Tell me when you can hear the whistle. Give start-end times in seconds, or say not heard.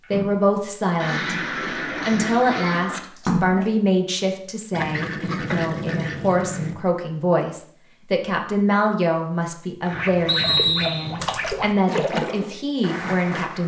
10.2-11.2.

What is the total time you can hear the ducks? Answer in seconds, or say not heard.
6 s.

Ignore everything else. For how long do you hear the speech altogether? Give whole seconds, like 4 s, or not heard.
13 s.